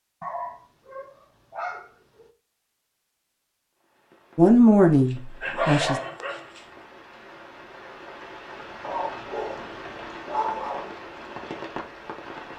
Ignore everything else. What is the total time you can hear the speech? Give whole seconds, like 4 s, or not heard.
2 s.